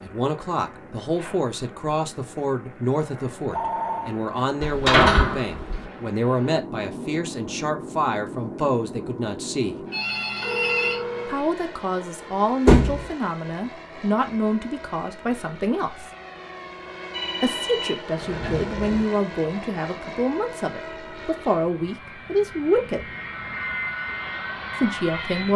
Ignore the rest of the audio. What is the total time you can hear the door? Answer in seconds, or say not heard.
3 s.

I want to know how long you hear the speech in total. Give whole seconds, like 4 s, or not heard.
21 s.